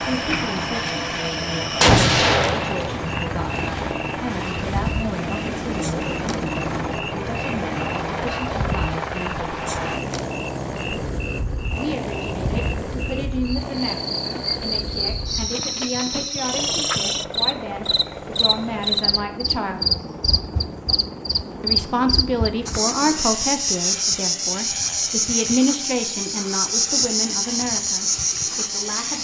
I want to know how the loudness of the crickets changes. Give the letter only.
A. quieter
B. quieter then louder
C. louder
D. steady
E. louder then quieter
C.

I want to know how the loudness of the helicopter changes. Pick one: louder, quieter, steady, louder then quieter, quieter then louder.
quieter.